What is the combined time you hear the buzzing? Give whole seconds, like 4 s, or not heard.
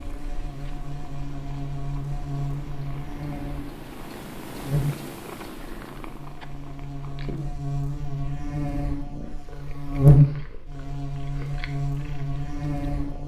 13 s.